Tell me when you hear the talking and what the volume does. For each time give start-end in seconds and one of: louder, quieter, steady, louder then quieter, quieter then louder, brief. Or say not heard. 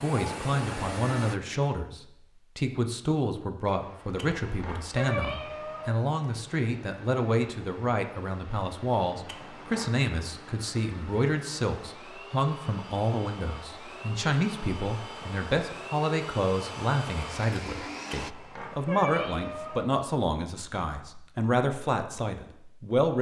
0.0-23.1 steady.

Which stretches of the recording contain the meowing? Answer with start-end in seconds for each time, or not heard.
4.2-6.0, 9.2-9.9, 18.1-19.9.